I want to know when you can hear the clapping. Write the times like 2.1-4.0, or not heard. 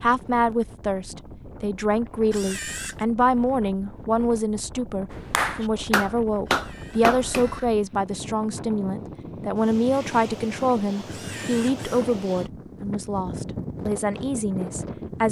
5.1-7.5.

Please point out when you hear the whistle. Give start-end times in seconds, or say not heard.
not heard.